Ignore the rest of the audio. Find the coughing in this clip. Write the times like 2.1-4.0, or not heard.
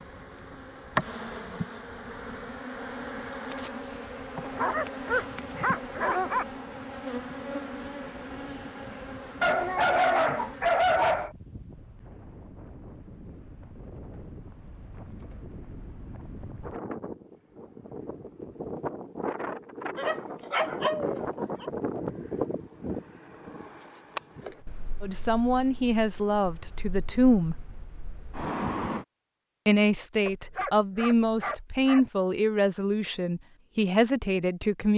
not heard.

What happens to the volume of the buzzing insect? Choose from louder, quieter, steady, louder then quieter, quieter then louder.
quieter.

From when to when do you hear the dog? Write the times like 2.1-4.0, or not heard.
4.4-6.5, 9.4-11.3, 19.9-21.7, 30.2-32.1.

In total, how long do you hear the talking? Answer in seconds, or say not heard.
8 s.